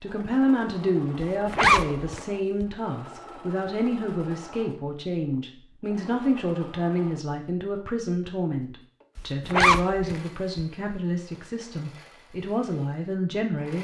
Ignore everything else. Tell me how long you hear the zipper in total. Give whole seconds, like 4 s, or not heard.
3 s.